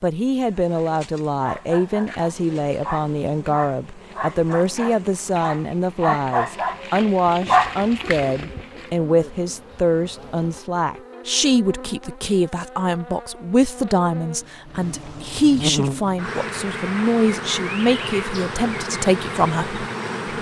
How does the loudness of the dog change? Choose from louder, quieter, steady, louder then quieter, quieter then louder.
louder.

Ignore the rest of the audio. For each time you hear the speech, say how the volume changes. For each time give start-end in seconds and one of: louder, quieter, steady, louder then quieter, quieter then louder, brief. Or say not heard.
0.0-20.3 steady.